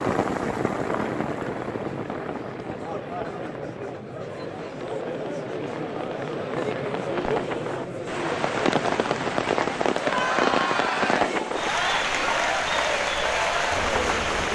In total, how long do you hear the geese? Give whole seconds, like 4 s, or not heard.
not heard.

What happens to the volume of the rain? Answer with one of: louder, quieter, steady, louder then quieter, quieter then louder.
quieter then louder.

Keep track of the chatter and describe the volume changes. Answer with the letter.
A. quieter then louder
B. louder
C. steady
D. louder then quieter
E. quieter
B.